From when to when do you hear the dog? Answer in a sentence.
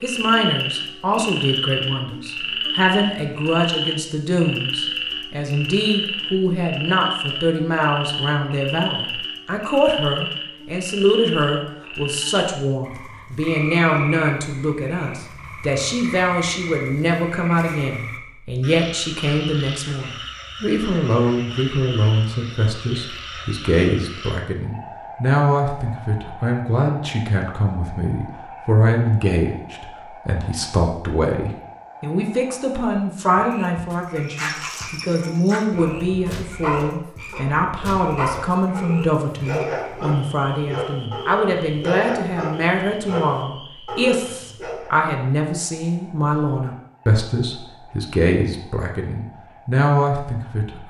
The dog can be heard from 34.2 to 44.9 s.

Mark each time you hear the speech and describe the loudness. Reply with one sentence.
The speech can be heard from 0.0 to 50.8 s, at a steady volume.